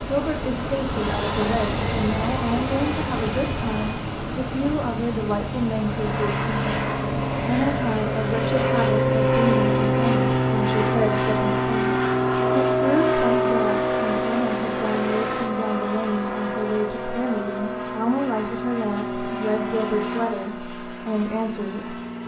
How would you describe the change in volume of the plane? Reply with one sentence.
The volume of the plane goes up, then down.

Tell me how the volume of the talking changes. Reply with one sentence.
The loudness of the talking stays about the same.